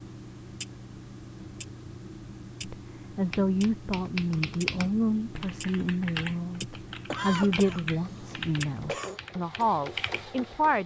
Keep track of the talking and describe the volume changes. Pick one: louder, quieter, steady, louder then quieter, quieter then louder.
steady.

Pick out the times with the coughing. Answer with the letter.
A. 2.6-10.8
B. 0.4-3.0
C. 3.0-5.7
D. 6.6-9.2
D.